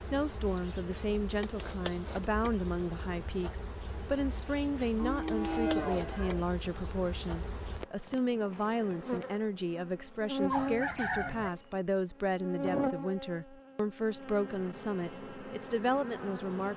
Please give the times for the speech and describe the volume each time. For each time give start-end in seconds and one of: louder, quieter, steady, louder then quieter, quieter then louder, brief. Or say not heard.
0.0-16.7 steady.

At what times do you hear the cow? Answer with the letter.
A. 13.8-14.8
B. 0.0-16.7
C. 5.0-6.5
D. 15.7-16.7
C.